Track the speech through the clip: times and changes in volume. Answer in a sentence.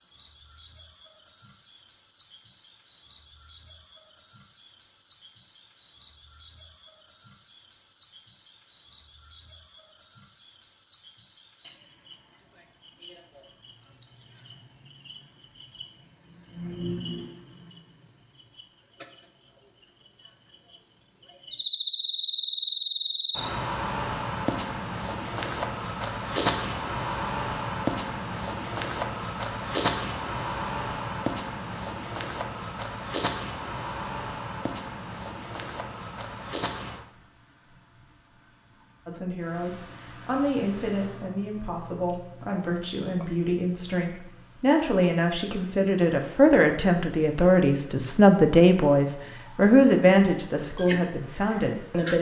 You can hear the speech from 39.0 to 52.1 s, getting louder.